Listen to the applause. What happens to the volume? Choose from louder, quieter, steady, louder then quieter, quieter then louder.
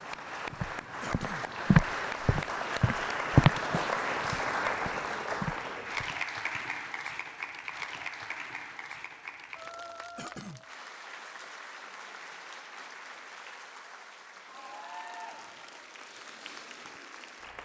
quieter.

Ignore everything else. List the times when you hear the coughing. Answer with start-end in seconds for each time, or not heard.
1.0-1.4, 10.2-10.6.